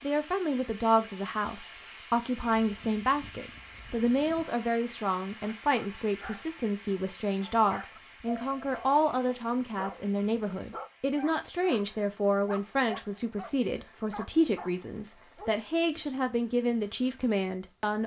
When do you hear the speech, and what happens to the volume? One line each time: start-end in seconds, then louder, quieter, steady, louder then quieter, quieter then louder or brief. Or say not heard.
0.0-18.0 steady.